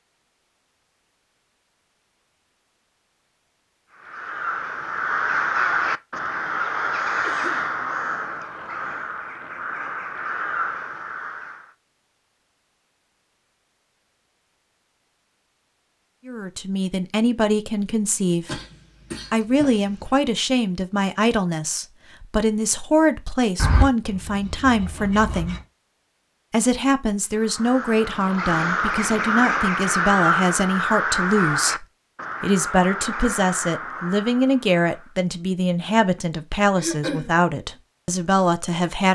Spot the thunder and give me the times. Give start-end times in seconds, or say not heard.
not heard.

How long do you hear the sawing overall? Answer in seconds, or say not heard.
2 s.